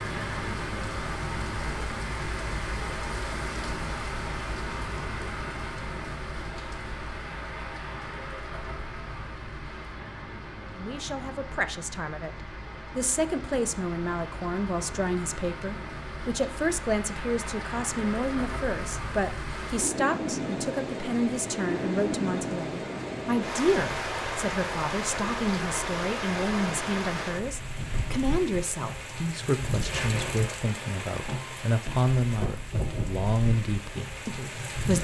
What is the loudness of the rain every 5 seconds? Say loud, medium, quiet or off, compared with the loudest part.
loud, medium, medium, medium, loud, loud, loud.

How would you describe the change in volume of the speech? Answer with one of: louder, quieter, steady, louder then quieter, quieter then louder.
steady.